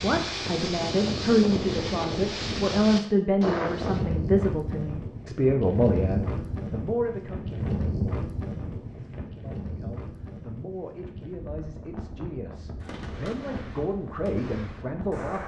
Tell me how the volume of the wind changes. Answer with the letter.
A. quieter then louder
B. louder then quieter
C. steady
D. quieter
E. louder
D.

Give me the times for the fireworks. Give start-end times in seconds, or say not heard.
12.8-15.4.